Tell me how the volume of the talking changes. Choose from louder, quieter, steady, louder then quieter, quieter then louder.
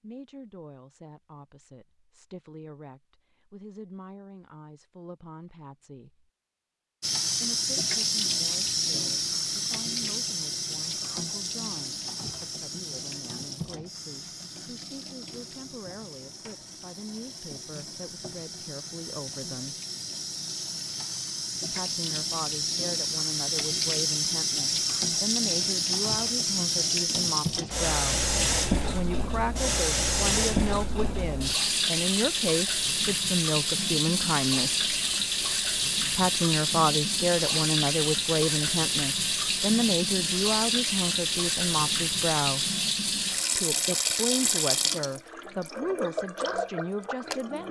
louder.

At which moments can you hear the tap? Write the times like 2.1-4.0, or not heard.
7.0-47.6.